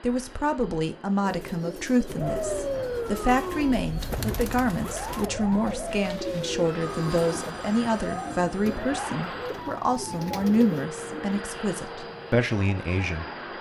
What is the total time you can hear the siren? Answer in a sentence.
The siren can be heard for 11 seconds in total.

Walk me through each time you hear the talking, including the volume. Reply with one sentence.
You can hear the talking from 0.0 to 13.2 s, at a steady volume.